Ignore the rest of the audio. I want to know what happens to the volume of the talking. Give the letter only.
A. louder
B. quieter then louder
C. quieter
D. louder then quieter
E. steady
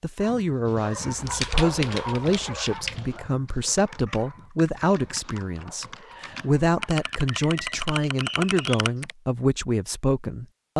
E.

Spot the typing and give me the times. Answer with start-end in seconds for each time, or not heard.
1.1-9.1.